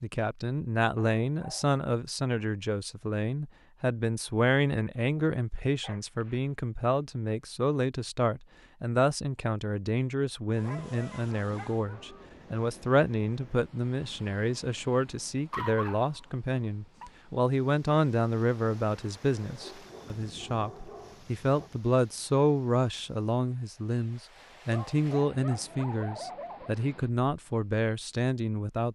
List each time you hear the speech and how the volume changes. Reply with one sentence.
The speech can be heard from 0.0 to 28.9 s, at a steady volume.